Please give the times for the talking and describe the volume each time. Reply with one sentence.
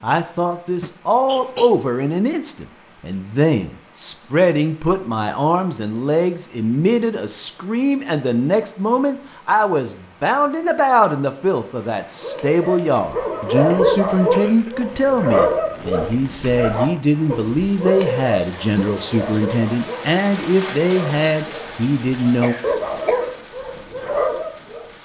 The talking can be heard from 0.0 to 22.6 s, at a steady volume.